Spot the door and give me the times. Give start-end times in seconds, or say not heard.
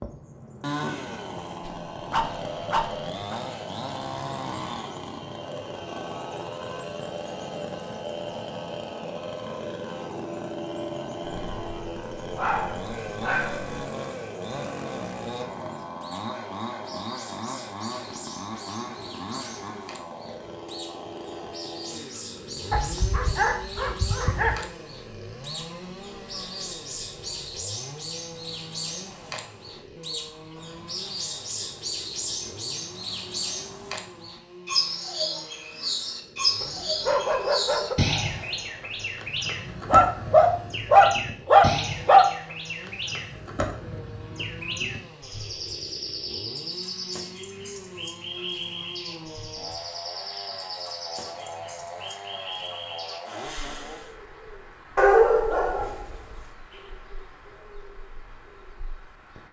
not heard.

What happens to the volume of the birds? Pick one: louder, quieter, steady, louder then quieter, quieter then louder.
louder then quieter.